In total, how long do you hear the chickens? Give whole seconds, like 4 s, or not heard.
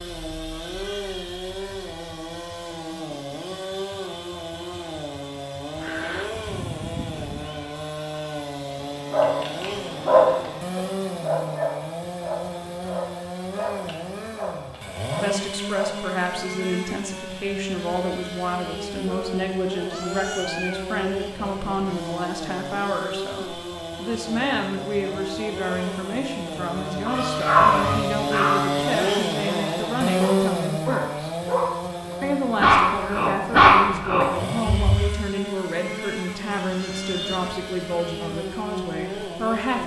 not heard.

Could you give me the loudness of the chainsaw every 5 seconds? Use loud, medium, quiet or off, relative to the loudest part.
medium, medium, medium, medium, medium, loud, loud, medium.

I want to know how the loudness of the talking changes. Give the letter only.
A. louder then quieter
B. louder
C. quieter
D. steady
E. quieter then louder
D.